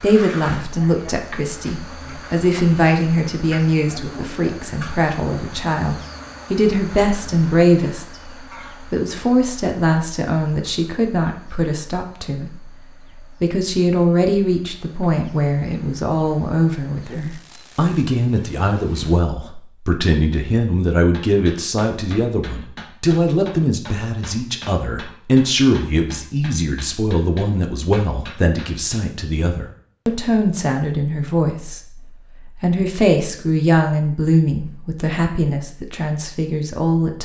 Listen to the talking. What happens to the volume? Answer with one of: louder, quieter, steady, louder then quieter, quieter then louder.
steady.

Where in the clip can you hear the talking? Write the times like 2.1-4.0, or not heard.
0.0-37.1.